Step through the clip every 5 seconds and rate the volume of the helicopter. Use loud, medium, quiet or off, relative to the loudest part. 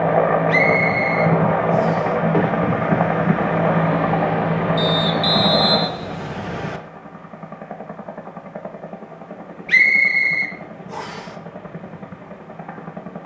loud, medium, quiet.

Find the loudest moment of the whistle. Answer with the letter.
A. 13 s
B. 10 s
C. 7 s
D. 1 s
B.